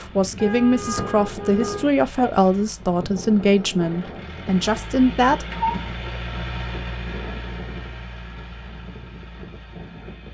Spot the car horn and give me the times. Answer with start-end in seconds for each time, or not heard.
0.3-1.9, 5.5-6.0.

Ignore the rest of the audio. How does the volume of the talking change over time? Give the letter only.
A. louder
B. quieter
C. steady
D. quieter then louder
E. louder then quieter
C.